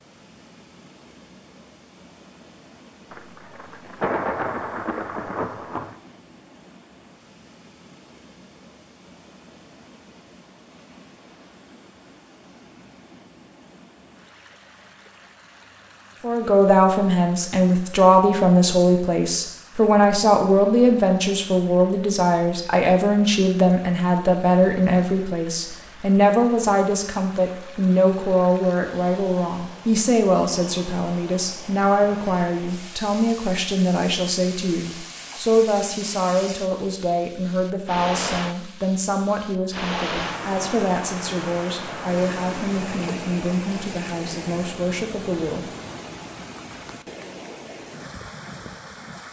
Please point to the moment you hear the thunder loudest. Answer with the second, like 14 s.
4 s.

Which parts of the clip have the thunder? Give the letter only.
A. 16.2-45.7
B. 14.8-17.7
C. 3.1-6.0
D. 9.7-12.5
C.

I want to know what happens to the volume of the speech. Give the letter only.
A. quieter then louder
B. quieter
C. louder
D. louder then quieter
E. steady
B.